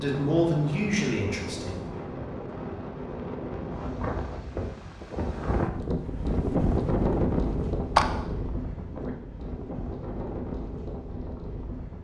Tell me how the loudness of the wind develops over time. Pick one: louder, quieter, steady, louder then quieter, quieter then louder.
louder then quieter.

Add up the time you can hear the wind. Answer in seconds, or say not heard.
12 s.